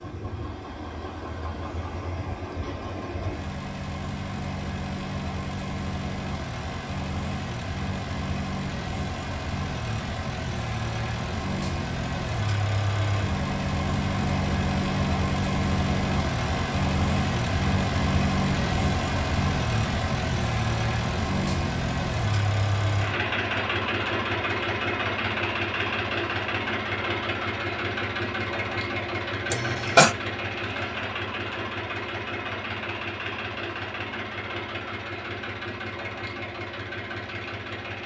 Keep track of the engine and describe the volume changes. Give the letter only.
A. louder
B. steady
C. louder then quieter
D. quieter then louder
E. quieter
C.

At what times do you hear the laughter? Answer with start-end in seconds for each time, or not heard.
29.5-30.1.